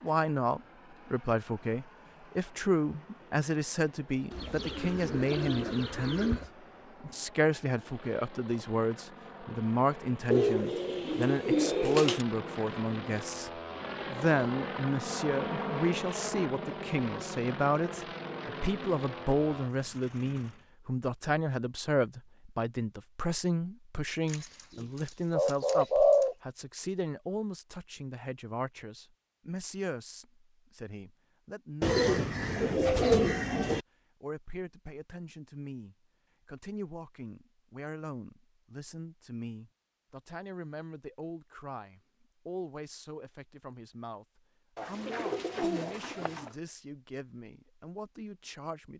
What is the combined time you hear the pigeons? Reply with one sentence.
You can hear the pigeons for 10 seconds altogether.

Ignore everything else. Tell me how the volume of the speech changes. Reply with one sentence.
The volume of the speech goes down.